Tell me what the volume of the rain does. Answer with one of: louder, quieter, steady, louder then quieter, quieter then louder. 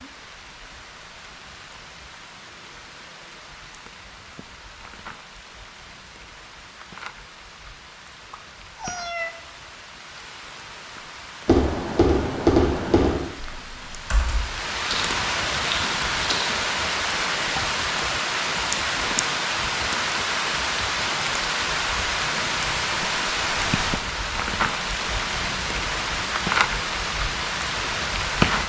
louder.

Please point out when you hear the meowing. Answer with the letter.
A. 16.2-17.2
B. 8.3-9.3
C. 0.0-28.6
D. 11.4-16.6
B.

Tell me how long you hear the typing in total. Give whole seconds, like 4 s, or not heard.
5 s.